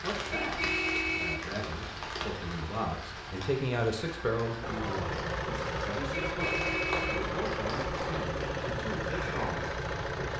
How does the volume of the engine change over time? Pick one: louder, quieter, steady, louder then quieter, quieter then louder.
steady.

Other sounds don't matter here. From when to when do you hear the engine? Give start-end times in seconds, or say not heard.
4.6-10.3.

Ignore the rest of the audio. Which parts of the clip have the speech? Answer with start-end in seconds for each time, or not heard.
0.0-0.6, 1.1-10.3.